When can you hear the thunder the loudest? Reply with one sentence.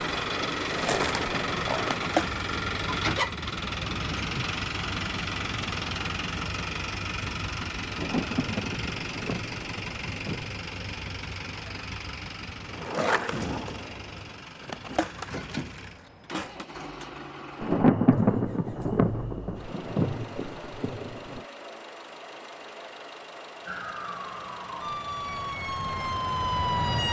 The volume of the thunder peaks at 18 seconds.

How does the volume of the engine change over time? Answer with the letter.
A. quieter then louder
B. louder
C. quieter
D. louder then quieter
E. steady
C.